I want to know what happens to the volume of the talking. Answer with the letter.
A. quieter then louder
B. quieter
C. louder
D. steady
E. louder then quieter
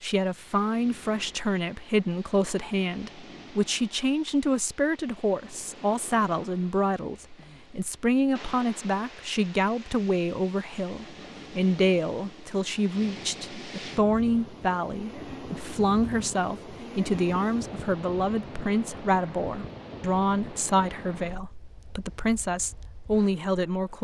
D.